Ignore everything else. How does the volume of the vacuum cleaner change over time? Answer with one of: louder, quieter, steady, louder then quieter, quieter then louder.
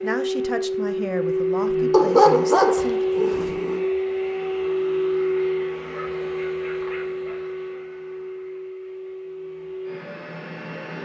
quieter.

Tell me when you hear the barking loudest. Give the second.
2 s.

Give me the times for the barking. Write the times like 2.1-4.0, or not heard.
1.9-3.8, 5.8-7.5.